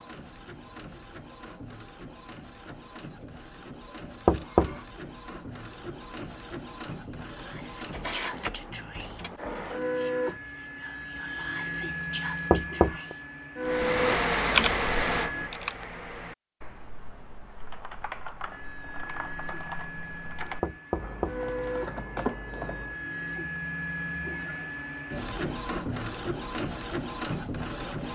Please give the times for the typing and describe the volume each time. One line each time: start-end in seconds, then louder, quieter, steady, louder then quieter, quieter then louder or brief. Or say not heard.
13.7-22.9 quieter then louder.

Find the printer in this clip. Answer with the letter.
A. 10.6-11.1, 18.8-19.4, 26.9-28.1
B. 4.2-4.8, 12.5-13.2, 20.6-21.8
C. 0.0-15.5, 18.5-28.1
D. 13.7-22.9
C.